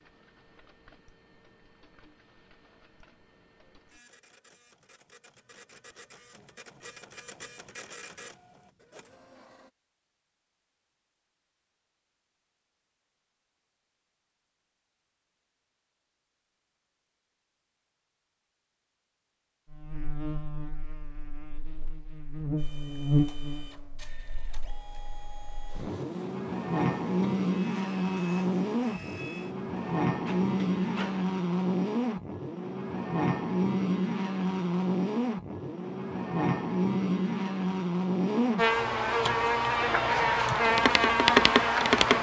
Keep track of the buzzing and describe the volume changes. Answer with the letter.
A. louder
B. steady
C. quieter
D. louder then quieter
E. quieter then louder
A.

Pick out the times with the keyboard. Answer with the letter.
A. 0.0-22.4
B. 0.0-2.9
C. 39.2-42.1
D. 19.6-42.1
C.